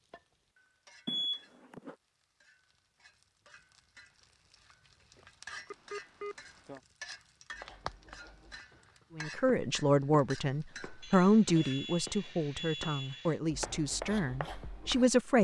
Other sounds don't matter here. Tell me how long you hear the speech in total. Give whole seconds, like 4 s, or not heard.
6 s.